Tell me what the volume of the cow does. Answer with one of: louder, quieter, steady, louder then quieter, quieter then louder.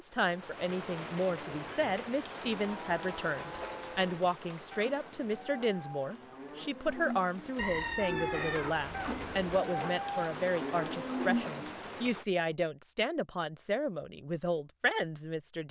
louder.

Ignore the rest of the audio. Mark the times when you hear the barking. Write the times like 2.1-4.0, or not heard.
not heard.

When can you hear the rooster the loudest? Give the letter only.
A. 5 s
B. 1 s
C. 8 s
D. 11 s
C.